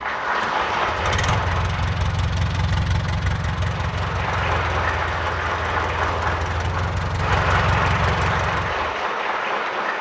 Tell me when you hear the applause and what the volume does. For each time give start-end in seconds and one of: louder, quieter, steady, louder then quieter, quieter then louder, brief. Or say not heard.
0.0-9.9 quieter then louder.